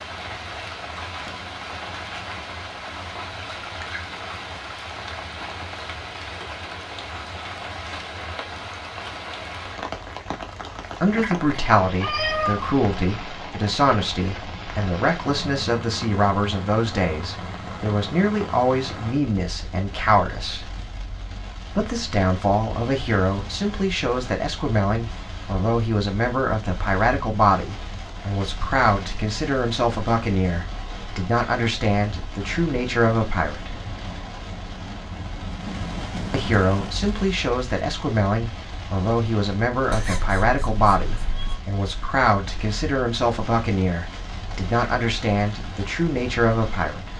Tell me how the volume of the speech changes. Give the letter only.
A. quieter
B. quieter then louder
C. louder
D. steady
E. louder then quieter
D.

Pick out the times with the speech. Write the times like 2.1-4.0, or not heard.
11.0-20.7, 21.7-33.8, 36.3-47.1.